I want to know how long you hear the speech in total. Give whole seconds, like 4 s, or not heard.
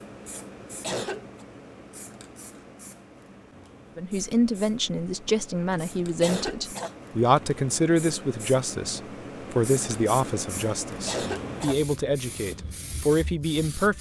10 s.